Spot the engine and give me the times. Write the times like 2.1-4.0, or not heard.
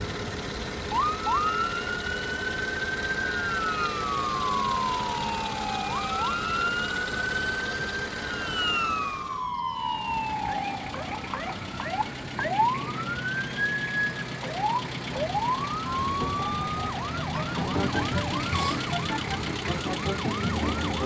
0.0-21.0.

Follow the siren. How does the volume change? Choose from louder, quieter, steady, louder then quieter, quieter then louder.
steady.